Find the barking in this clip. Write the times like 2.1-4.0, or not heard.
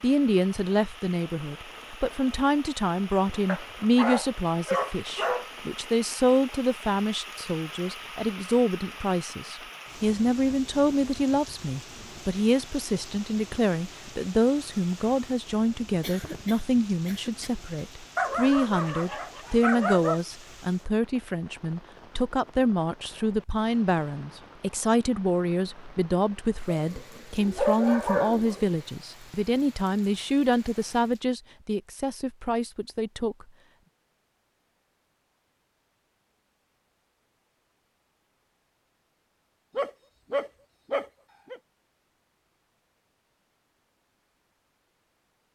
3.5-5.5, 18.1-20.2, 26.8-28.7, 39.8-41.6.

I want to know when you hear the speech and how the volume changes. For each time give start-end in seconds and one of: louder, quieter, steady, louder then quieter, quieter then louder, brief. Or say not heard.
0.0-33.5 steady.